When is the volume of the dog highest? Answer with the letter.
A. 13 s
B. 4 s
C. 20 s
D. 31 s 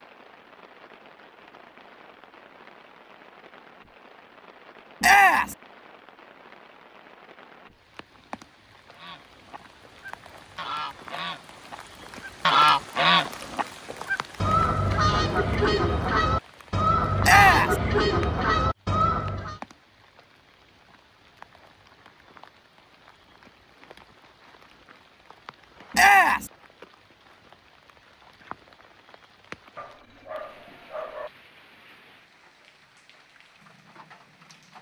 D.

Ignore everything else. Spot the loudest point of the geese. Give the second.
13 s.